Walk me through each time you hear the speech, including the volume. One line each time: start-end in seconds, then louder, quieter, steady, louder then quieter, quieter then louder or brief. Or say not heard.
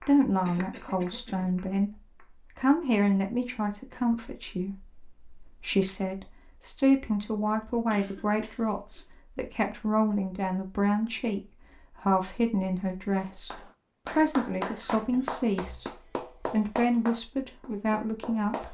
0.0-18.6 steady.